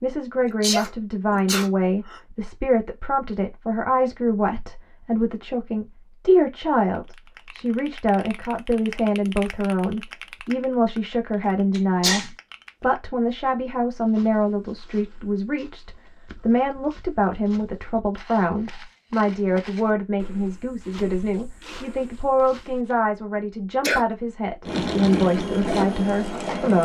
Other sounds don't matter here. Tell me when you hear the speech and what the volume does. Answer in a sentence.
You can hear the speech from 0.0 to 26.8 s, at a steady volume.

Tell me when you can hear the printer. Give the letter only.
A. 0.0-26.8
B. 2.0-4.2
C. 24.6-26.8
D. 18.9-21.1
C.